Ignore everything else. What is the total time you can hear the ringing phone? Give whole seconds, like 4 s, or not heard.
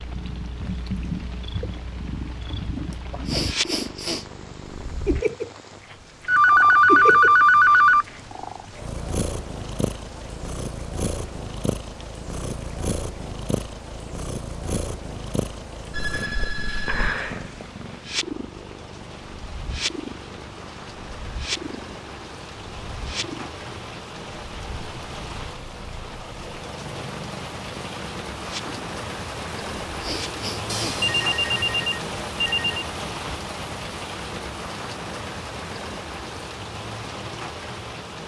5 s.